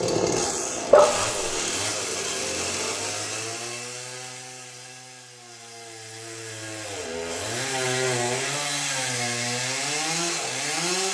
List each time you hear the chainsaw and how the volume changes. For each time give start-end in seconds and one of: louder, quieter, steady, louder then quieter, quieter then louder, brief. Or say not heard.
0.0-11.0 quieter then louder.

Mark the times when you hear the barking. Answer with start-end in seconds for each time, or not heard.
0.9-1.6.